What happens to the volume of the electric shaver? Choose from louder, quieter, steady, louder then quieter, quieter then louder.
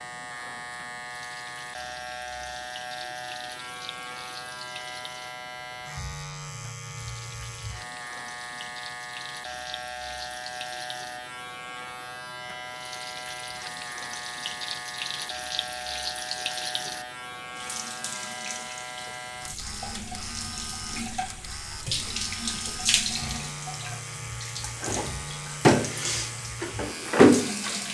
steady.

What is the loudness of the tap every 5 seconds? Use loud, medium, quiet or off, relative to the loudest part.
quiet, quiet, quiet, quiet, medium, loud.